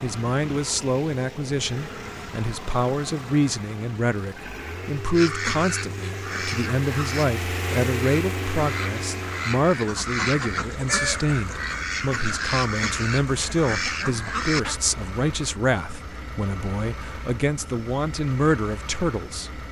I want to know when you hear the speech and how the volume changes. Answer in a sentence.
You can hear the speech from 0.0 to 19.6 s, at a steady volume.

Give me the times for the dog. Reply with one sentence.
The dog can't be heard in this clip.